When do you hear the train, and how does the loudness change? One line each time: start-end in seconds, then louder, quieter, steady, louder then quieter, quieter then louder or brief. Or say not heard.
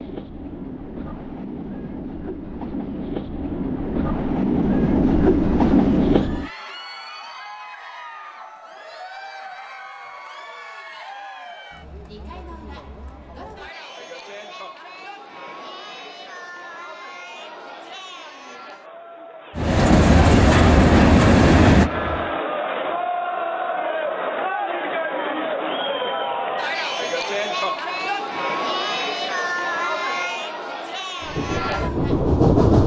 0.0-6.5 louder
19.6-22.4 brief
31.2-32.8 brief.